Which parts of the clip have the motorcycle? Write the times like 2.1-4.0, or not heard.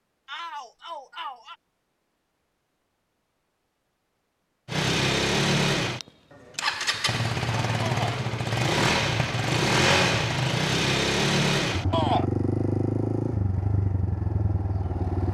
4.7-15.2.